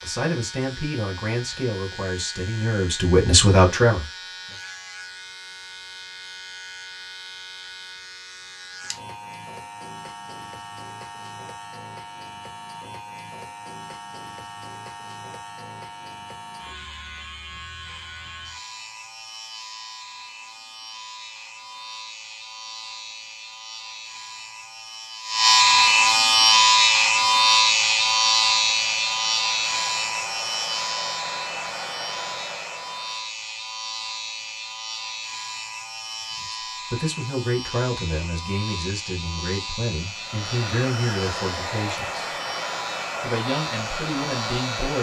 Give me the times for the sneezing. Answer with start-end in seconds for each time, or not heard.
not heard.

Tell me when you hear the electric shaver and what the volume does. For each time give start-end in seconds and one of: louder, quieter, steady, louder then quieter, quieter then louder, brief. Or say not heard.
0.0-44.9 louder then quieter.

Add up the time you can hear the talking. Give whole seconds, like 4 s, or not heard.
12 s.